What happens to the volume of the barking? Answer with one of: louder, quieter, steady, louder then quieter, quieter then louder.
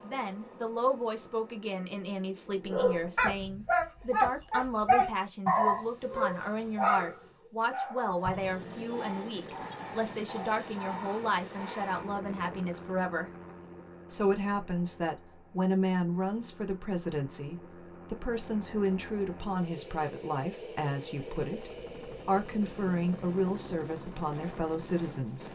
quieter.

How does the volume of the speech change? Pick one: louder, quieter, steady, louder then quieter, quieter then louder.
steady.